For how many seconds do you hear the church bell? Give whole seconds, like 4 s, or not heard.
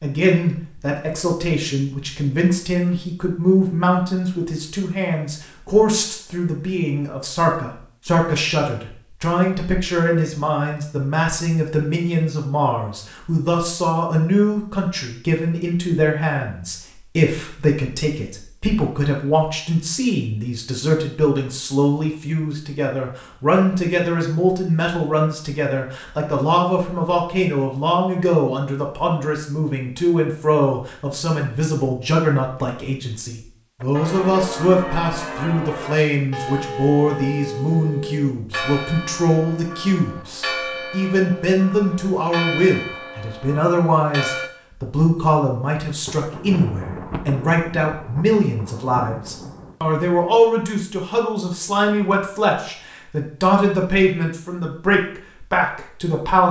11 s.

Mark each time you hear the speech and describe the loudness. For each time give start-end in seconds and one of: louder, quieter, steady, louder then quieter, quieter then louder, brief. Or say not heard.
0.0-56.4 steady.